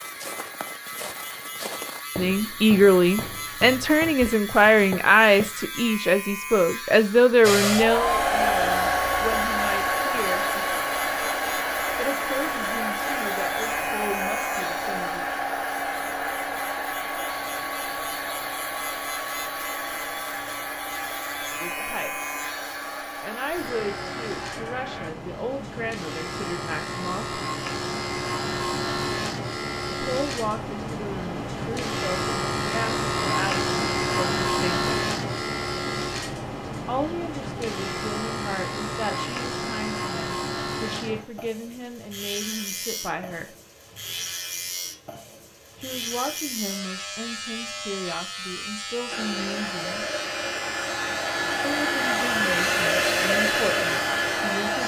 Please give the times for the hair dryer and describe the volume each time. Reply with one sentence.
You can hear the hair dryer from 7.4 to 25.1 s, getting quieter; and from 49.0 to 54.8 s, getting louder.